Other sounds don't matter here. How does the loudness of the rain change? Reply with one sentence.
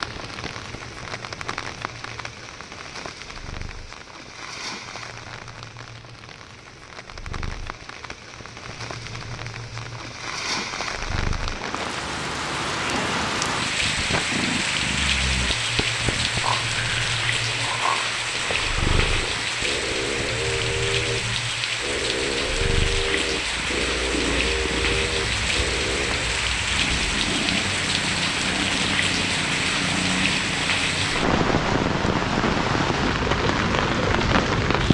The loudness of the rain goes up.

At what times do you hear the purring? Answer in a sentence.
You can hear the purring from 0.0 to 34.8 s.